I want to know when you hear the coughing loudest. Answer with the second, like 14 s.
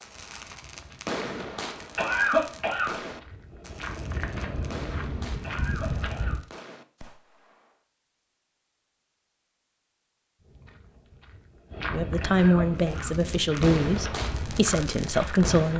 2 s.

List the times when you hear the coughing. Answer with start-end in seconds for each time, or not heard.
1.9-3.0, 5.4-6.4, 12.2-13.2.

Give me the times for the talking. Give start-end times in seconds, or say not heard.
11.9-15.7.